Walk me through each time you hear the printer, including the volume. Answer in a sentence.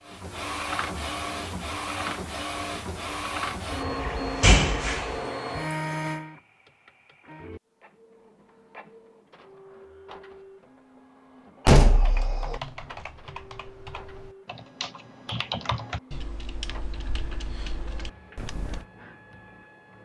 The printer can be heard from 0.0 to 20.0 s, getting quieter.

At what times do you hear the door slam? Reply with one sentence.
The door slam can be heard from 3.7 to 5.2 s and from 11.7 to 12.6 s.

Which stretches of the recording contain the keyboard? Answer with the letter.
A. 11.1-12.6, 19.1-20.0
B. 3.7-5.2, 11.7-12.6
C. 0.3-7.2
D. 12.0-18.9
D.